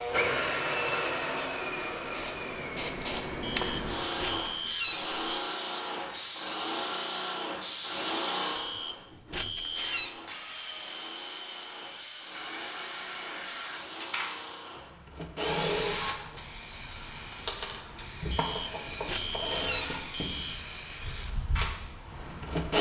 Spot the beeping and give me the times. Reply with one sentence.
The beeping can be heard from 3.4 to 5.5 s, from 8.6 to 10.2 s and from 18.3 to 20.6 s.